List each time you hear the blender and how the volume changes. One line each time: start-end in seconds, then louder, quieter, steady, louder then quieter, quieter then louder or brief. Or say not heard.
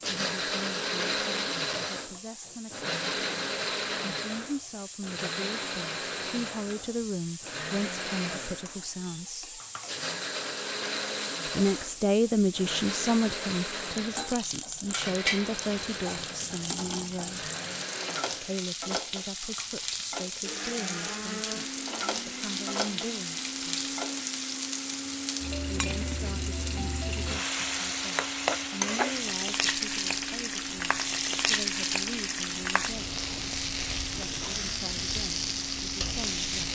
0.0-36.6 quieter.